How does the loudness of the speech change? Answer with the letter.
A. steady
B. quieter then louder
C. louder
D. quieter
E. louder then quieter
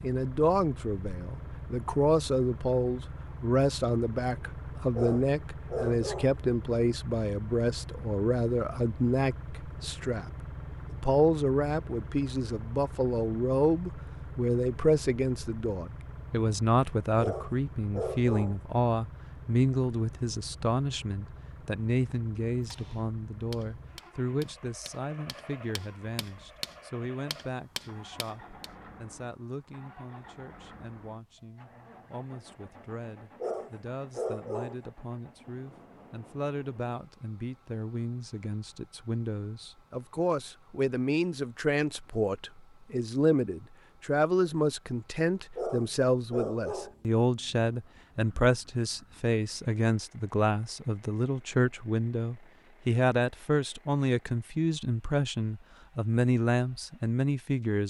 B.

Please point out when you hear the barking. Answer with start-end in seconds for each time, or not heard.
5.0-6.3, 17.1-18.6, 33.4-34.8, 45.5-47.0.